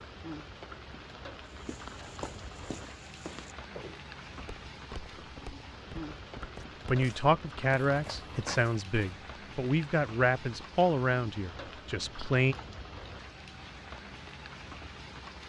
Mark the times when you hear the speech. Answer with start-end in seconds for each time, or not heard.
6.8-12.6.